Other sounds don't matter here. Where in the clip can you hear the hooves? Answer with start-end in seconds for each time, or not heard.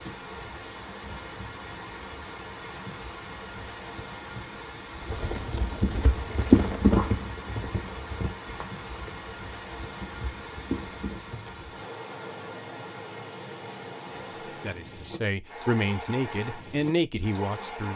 5.0-11.2.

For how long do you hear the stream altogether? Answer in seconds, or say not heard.
18 s.